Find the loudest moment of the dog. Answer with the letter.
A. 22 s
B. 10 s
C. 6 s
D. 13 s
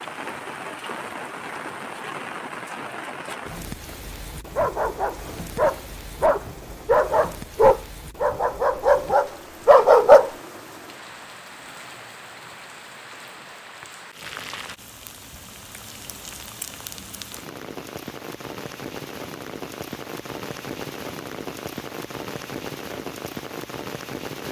B.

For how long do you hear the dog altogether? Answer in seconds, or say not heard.
6 s.